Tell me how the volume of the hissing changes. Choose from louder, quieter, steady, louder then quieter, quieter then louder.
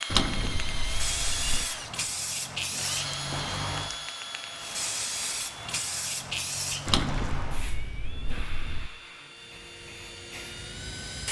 quieter.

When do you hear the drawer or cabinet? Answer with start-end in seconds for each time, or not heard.
0.1-1.6, 6.8-8.9.